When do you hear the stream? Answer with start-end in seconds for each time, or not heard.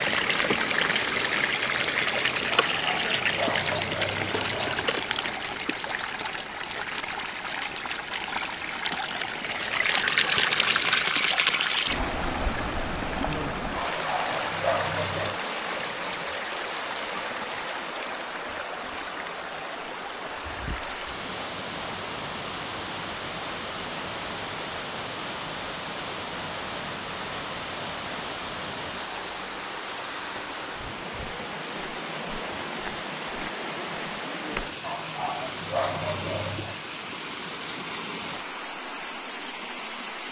0.0-40.2.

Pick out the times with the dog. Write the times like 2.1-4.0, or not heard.
2.6-4.8, 13.7-15.4, 34.8-36.8.